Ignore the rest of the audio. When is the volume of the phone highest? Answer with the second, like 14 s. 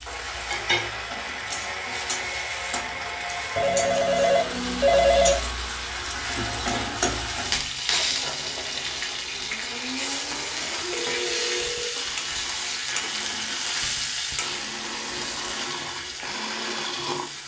5 s.